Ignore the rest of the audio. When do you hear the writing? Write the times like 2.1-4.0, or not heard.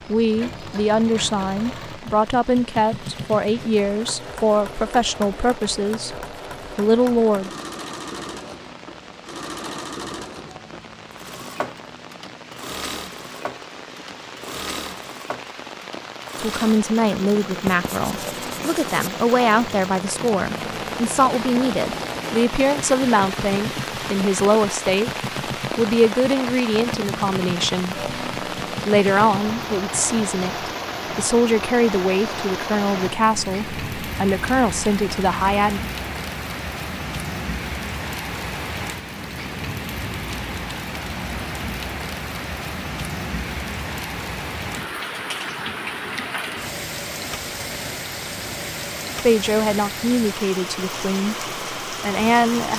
17.6-19.1.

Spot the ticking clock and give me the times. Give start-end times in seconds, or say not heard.
not heard.